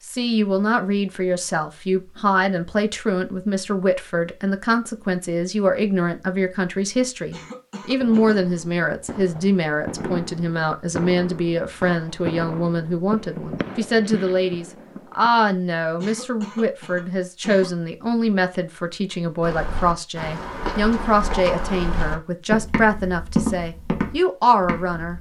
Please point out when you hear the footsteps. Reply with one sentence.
You can hear the footsteps from 19.4 to 25.1 s.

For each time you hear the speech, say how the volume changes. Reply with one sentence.
The speech can be heard from 0.1 to 25.1 s, at a steady volume.